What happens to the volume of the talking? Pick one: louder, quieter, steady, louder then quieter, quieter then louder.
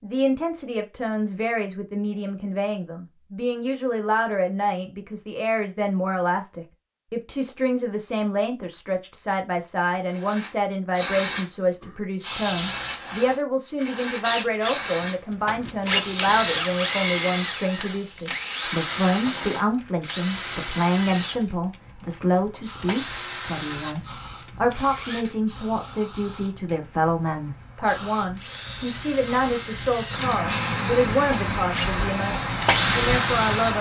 steady.